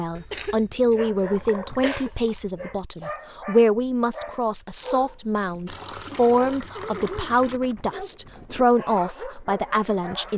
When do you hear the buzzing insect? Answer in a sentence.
You can't hear the buzzing insect here.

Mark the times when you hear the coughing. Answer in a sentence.
The coughing can be heard from 0.1 to 2.1 s.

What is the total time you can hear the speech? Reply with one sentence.
You can hear the speech for 10 seconds altogether.